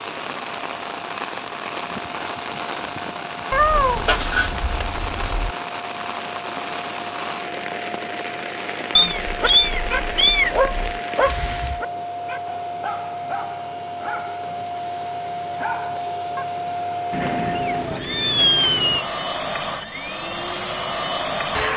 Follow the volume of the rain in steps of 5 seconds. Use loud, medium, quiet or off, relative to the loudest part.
loud, loud, loud, off, off.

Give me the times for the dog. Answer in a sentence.
The dog can be heard from 9.4 to 16.4 s.